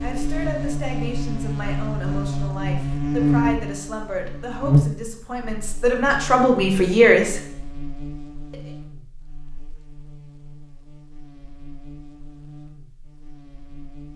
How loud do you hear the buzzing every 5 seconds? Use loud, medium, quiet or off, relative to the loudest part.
loud, quiet, quiet.